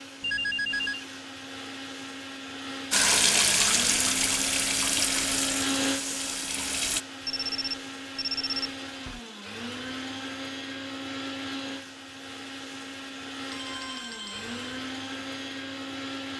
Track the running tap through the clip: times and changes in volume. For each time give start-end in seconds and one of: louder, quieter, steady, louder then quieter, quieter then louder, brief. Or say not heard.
2.9-7.0 quieter.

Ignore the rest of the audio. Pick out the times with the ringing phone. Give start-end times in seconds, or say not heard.
0.2-1.1, 7.2-9.2, 13.5-14.6.